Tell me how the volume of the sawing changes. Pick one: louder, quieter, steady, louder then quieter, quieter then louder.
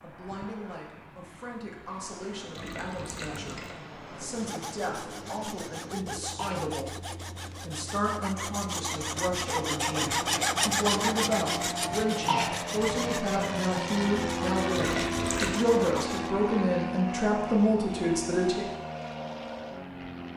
louder then quieter.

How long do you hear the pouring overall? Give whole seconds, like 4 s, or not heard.
2 s.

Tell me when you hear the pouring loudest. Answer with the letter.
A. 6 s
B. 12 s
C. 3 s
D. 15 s
D.